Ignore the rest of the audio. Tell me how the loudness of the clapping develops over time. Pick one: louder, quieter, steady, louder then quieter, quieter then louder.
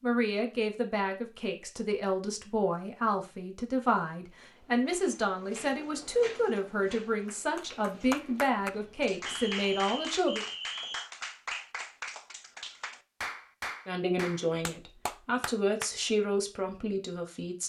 steady.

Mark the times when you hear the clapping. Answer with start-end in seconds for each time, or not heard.
7.2-15.9.